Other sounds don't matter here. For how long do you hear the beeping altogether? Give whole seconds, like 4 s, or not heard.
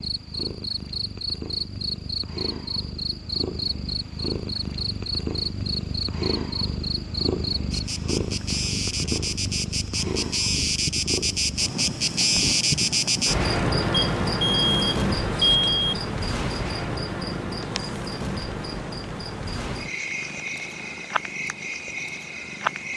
2 s.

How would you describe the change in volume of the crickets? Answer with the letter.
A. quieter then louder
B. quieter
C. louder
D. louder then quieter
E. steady
D.